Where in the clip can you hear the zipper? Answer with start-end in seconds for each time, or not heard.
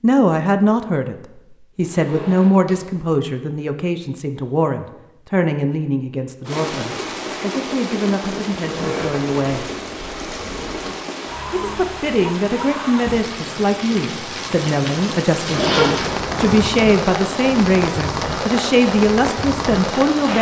1.8-2.8, 8.7-11.0, 15.4-16.6.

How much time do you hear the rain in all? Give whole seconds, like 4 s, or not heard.
14 s.